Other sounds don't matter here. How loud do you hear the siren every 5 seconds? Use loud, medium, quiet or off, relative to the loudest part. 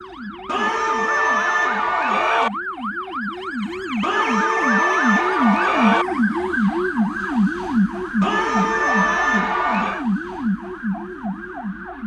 medium, loud, medium.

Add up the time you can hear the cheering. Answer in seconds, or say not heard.
6 s.